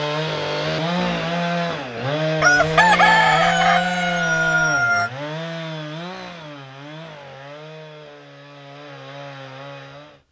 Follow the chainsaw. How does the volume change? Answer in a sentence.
The volume of the chainsaw goes down.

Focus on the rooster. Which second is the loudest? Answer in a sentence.
The volume of the rooster peaks at 3 seconds.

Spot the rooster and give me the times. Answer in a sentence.
You can hear the rooster from 2.4 to 5.1 s.